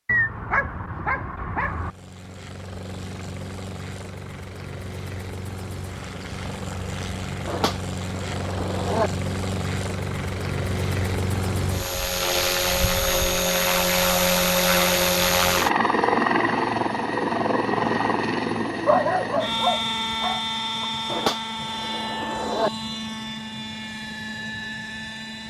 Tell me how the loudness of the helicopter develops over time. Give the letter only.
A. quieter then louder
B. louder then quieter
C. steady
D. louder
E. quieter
B.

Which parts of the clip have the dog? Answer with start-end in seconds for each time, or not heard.
0.1-1.9, 18.9-20.9.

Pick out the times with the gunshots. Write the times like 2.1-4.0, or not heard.
7.5-9.1, 21.1-22.7.